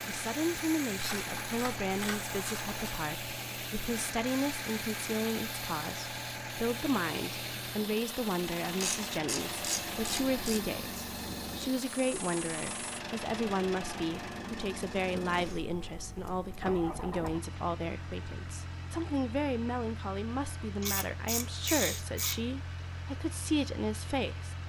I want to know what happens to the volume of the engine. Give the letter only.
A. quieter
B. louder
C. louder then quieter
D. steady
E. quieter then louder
A.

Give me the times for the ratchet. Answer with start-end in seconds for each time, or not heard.
0.9-3.0, 8.8-10.6, 20.8-22.4.